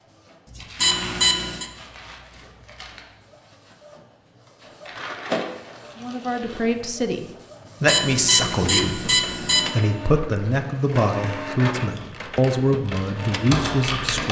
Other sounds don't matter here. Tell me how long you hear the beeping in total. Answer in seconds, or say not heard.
3 s.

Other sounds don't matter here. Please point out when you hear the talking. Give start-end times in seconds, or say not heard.
6.0-14.2.